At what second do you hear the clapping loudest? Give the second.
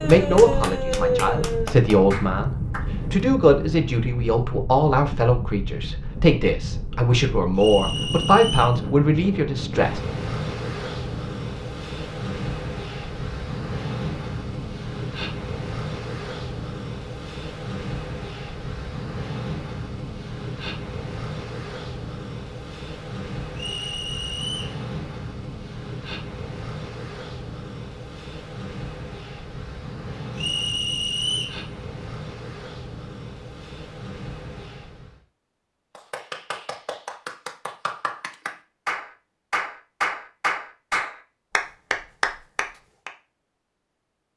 1 s.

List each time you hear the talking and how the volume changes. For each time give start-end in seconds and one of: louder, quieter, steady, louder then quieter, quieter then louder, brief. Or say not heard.
0.0-10.0 steady.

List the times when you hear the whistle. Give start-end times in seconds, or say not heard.
7.5-8.8, 23.6-24.8, 30.4-31.6.